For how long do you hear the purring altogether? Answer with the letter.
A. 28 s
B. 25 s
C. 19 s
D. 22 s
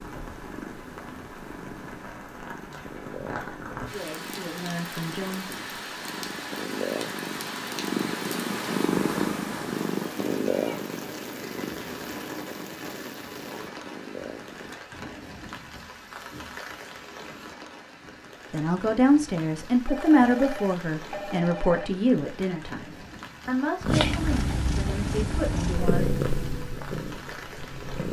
C.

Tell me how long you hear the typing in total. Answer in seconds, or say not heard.
not heard.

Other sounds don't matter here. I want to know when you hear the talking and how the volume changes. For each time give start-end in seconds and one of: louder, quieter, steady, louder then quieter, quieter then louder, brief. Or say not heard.
3.9-5.7 brief
18.5-26.1 quieter.